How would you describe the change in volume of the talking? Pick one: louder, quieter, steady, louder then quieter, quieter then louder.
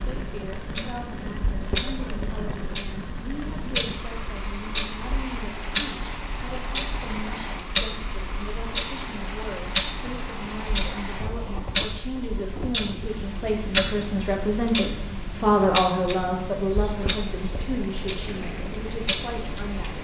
louder.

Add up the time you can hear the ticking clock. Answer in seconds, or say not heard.
20 s.